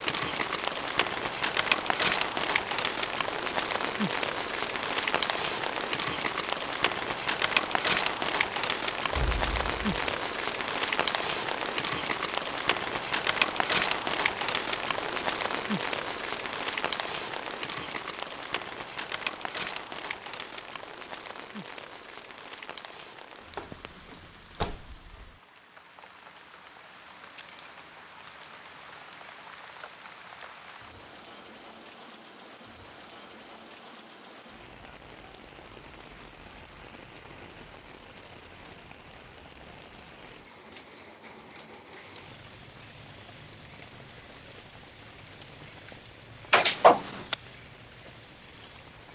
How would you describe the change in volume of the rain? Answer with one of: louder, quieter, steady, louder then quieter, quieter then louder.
quieter.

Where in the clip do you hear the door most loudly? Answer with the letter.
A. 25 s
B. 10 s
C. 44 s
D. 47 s
D.